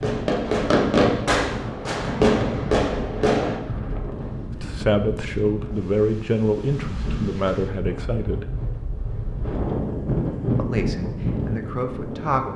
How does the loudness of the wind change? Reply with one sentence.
The volume of the wind goes up.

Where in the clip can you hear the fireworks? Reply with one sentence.
You can hear the fireworks from 0.0 to 3.6 s.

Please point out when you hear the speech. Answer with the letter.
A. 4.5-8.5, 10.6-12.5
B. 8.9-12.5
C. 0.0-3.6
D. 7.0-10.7
A.